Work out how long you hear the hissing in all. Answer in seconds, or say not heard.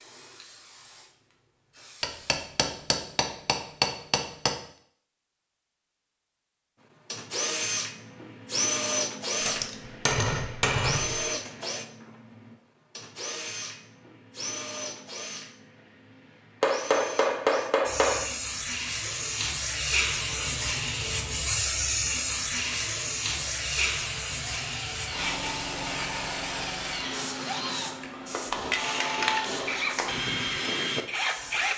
16 s.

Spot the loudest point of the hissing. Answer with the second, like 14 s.
22 s.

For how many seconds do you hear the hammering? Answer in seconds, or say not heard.
8 s.